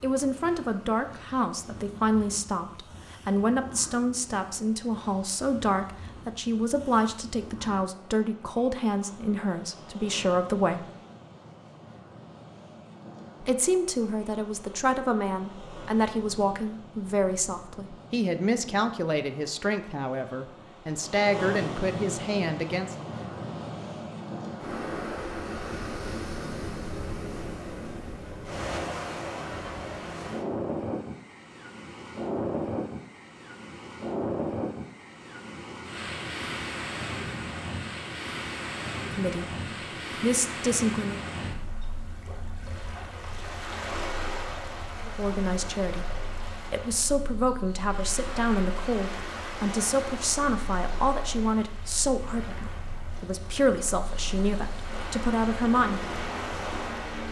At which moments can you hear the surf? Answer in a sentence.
The surf can be heard from 0.0 to 57.2 s.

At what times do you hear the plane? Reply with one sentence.
You can hear the plane from 55.8 to 57.2 s.